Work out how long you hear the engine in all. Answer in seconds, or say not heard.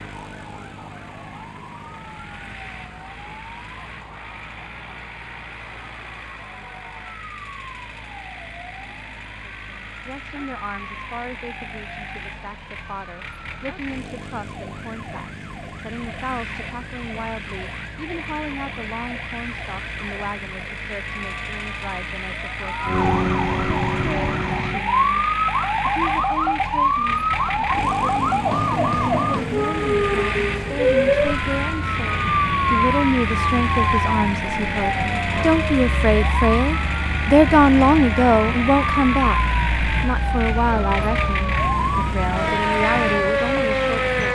44 s.